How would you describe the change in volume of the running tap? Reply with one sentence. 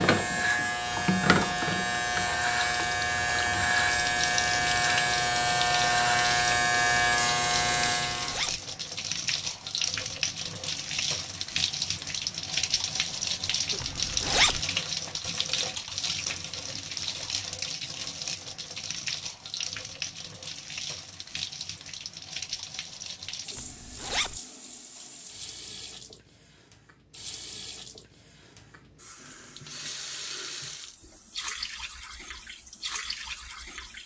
The loudness of the running tap goes down.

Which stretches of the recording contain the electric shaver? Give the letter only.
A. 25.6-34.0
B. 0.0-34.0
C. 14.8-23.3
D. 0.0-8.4
D.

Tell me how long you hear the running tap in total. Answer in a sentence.
You can hear the running tap for 34 seconds altogether.